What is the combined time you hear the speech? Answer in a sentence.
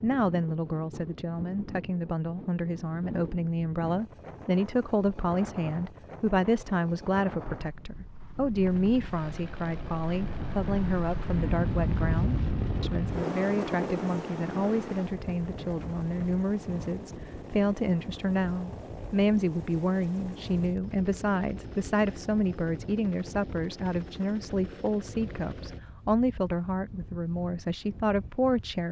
You can hear the speech for 29 seconds altogether.